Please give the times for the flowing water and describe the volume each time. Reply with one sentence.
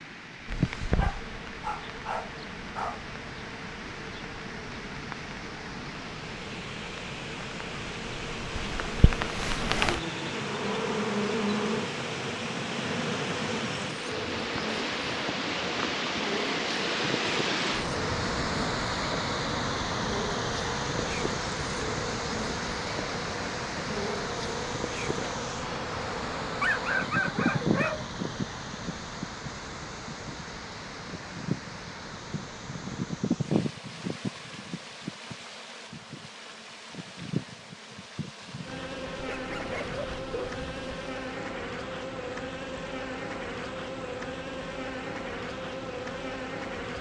The flowing water can be heard from 0.0 to 46.9 s, getting louder then quieter.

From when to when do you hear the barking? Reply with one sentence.
You can hear the barking from 0.9 to 3.0 s, from 26.6 to 28.1 s and from 39.2 to 40.9 s.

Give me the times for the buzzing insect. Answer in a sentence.
You can hear the buzzing insect from 0.0 to 46.9 s.